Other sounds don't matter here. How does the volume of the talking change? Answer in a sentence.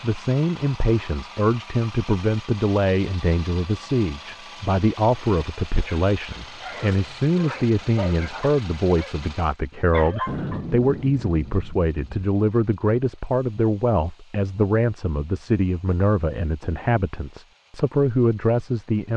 The loudness of the talking stays about the same.